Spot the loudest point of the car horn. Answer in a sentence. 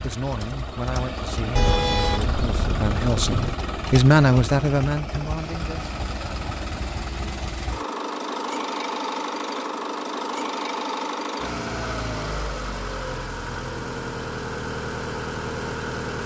The volume of the car horn peaks at 2 seconds.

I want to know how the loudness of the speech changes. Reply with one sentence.
The volume of the speech goes up, then down.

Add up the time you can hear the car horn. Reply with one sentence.
The car horn can be heard for 2 seconds in total.